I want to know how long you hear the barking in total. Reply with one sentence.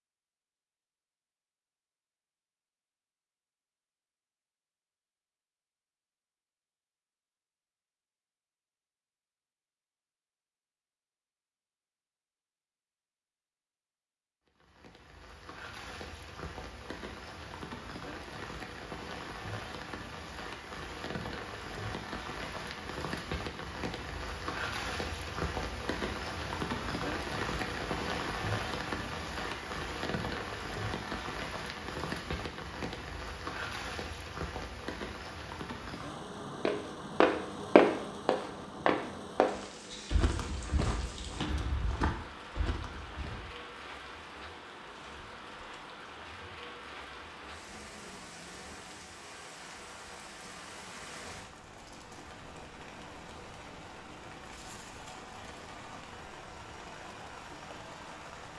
The barking can't be heard in this clip.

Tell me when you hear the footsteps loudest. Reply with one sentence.
The loudest moment of the footsteps is at 38 seconds.